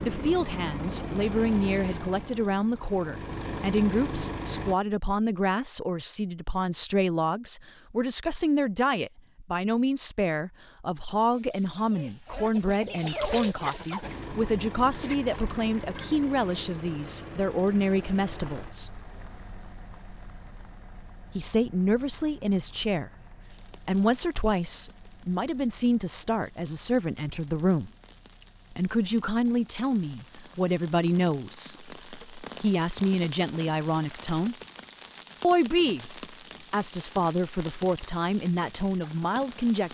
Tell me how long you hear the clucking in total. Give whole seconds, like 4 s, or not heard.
6 s.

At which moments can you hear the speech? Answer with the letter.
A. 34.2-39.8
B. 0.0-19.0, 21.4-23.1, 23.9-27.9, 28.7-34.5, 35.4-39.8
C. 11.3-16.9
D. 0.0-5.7
B.